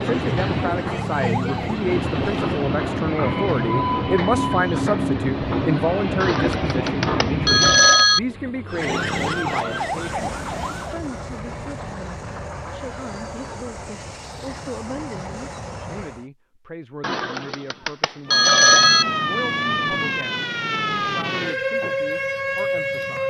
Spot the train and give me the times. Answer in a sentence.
You can hear the train from 0.0 to 16.3 s.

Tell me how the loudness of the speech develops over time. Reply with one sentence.
The volume of the speech goes down.